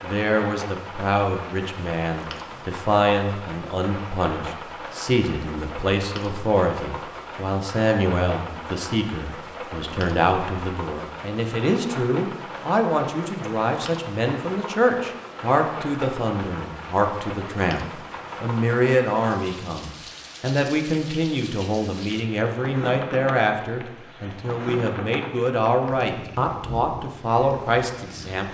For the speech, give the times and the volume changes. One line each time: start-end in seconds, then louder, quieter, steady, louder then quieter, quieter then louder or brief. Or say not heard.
0.0-28.4 steady.